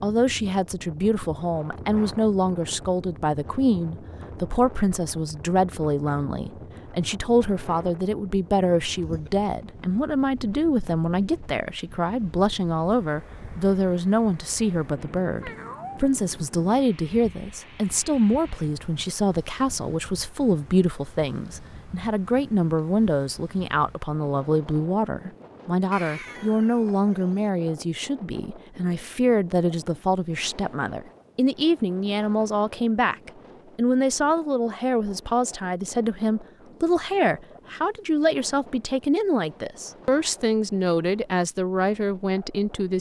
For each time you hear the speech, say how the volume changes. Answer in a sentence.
The speech can be heard from 0.0 to 42.9 s, at a steady volume.